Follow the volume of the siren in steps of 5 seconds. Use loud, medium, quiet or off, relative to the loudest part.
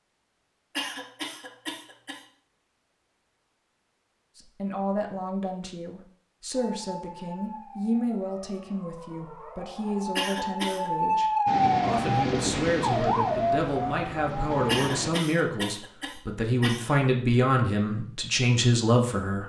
off, quiet, loud, off.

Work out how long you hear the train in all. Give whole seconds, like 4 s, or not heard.
4 s.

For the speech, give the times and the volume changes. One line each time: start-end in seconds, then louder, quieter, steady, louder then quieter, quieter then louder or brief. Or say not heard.
4.3-19.4 louder.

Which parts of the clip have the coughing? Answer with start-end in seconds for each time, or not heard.
0.8-2.2, 10.2-10.9, 14.7-16.9.